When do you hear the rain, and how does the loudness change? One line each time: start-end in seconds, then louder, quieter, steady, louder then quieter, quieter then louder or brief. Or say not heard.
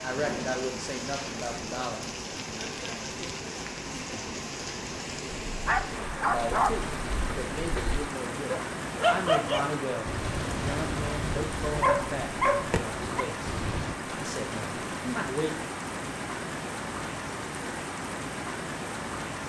0.0-19.4 steady.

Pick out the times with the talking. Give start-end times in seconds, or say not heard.
0.0-2.0, 6.1-15.8.